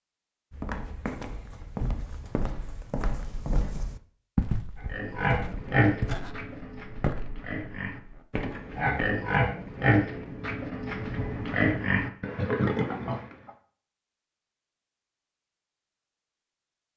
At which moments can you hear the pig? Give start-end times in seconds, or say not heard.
4.8-13.5.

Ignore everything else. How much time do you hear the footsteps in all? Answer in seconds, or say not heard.
9 s.